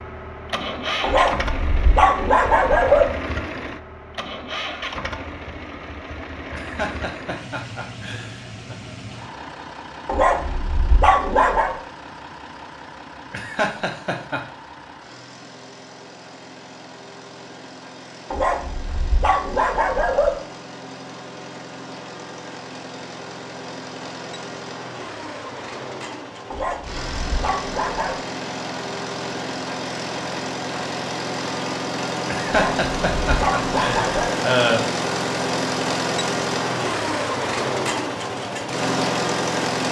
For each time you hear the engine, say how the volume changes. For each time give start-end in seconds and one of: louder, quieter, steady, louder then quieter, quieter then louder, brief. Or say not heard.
0.0-39.8 quieter then louder.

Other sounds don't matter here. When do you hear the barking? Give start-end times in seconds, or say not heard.
1.0-3.0, 10.1-11.8, 18.3-20.3, 26.5-28.2, 32.5-34.4.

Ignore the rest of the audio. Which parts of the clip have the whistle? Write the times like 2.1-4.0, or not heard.
not heard.